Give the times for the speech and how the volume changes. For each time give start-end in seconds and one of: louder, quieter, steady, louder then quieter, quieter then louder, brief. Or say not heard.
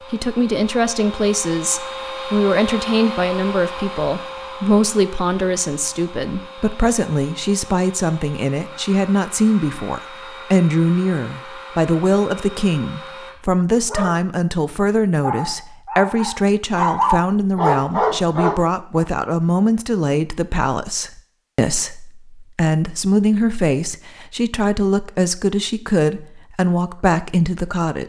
0.1-28.0 steady.